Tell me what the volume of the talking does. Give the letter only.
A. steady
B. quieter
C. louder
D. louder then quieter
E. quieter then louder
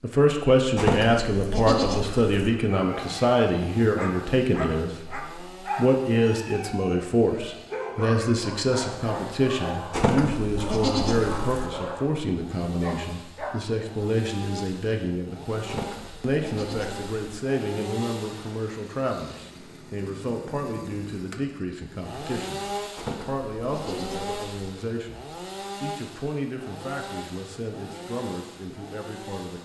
B.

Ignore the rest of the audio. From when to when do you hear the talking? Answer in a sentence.
You can hear the talking from 0.0 to 29.6 s.